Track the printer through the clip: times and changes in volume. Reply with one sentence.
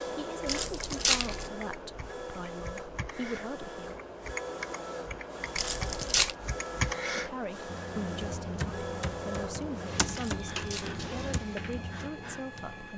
The printer can be heard from 0.0 to 12.9 s, at a steady volume.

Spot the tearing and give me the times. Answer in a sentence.
You can hear the tearing from 0.5 to 1.5 s, from 5.5 to 6.3 s and from 10.1 to 11.0 s.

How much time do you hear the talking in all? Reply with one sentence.
The talking can be heard for 10 seconds in total.